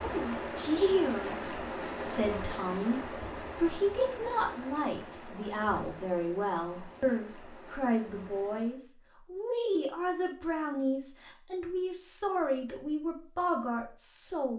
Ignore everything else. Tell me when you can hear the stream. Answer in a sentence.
You can hear the stream from 0.0 to 8.8 s.